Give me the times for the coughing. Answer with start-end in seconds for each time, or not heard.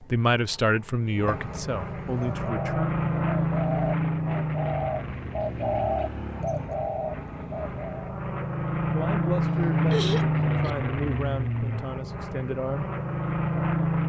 1.2-2.4, 9.4-10.8.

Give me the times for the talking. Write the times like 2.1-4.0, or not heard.
0.0-2.9, 8.9-12.9.